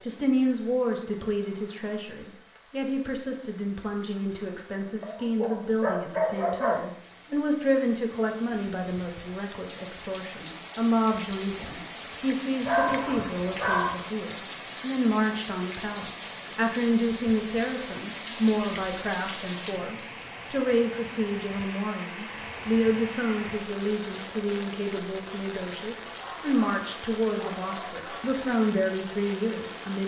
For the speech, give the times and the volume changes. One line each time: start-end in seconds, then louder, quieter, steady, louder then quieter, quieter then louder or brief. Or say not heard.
0.0-30.0 steady.